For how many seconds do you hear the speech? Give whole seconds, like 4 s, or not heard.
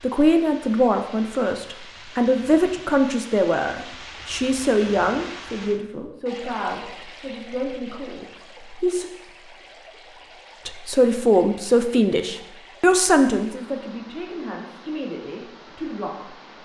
15 s.